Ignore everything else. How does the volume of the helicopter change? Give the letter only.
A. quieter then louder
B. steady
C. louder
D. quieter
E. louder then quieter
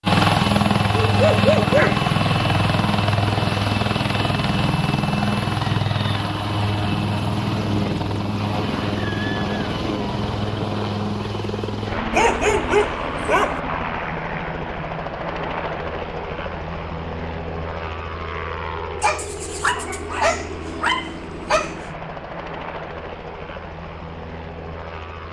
D.